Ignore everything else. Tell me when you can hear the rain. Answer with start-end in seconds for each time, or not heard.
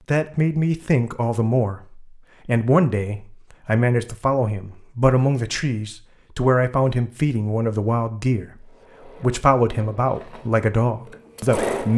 not heard.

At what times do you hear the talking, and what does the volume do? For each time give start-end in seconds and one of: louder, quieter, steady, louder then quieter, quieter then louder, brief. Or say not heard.
0.1-11.9 steady.